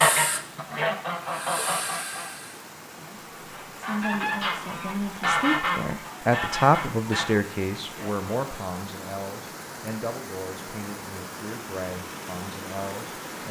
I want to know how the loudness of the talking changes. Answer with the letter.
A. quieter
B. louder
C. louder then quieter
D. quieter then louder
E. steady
C.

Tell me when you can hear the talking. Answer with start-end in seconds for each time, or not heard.
3.0-13.4.